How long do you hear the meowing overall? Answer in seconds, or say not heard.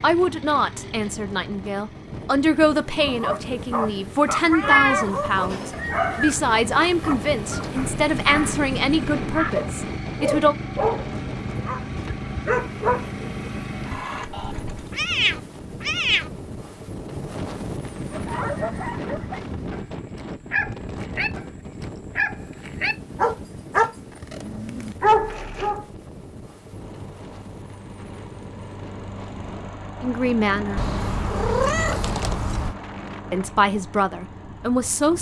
5 s.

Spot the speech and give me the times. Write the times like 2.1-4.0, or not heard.
0.0-10.6, 30.0-30.8, 33.3-35.1.